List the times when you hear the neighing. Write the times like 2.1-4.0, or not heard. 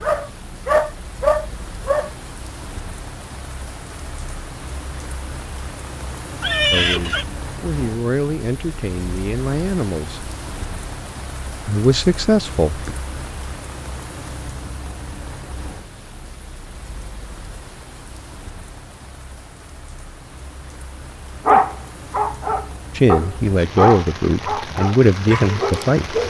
6.4-7.2.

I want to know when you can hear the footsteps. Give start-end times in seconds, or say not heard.
not heard.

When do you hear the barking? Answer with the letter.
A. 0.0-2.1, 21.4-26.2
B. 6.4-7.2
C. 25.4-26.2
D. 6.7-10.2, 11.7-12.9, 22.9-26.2
A.